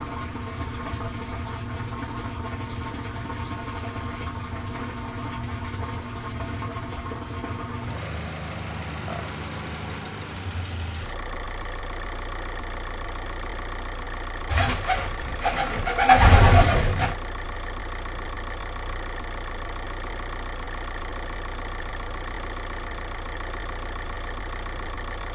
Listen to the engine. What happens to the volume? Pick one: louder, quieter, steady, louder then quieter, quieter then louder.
steady.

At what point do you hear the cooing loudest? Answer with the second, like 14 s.
16 s.